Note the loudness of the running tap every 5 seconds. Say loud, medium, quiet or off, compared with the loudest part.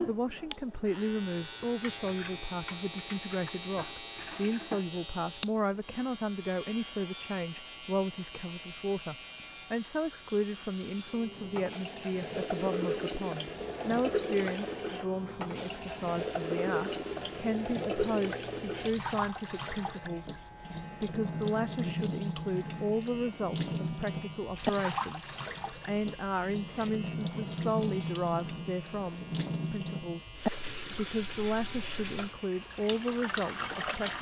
medium, quiet, loud, loud, loud, loud, loud.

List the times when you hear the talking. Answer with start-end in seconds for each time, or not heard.
0.1-30.3, 30.9-34.1.